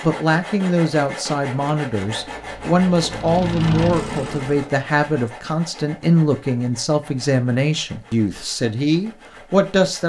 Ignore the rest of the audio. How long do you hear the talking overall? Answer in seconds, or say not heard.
10 s.